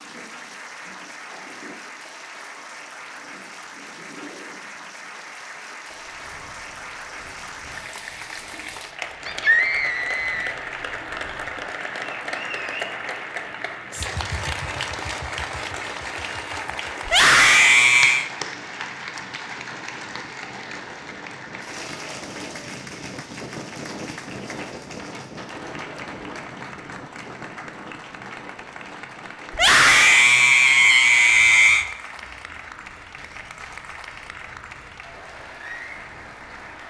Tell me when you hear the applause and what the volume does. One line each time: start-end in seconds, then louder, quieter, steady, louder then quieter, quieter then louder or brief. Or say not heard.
0.0-36.8 louder then quieter.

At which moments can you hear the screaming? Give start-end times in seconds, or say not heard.
9.2-10.6, 17.1-18.2, 29.5-31.9.